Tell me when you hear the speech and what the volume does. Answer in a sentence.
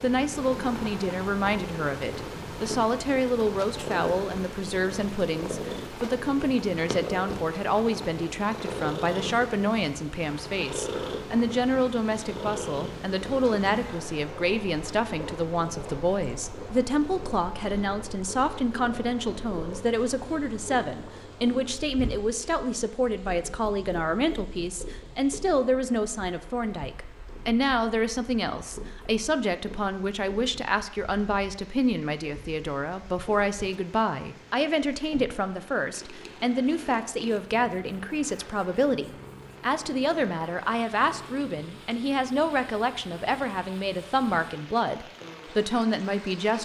You can hear the speech from 0.0 to 46.6 s, at a steady volume.